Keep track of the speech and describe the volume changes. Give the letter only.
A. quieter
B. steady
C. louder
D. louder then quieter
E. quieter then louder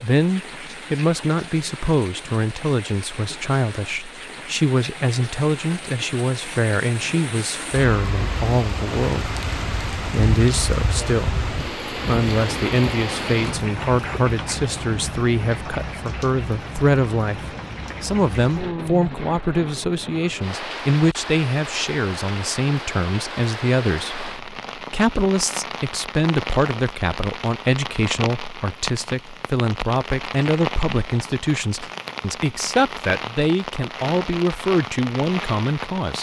B.